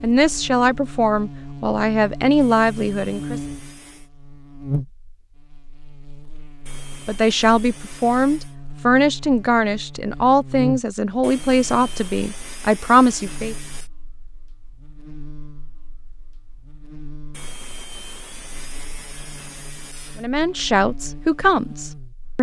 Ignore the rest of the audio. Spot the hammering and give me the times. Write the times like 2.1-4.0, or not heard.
not heard.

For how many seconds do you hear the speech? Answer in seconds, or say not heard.
12 s.